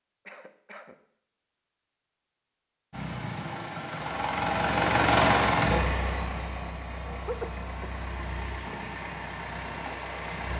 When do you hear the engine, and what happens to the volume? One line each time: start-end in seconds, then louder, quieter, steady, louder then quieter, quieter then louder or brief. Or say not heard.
2.9-10.5 louder then quieter.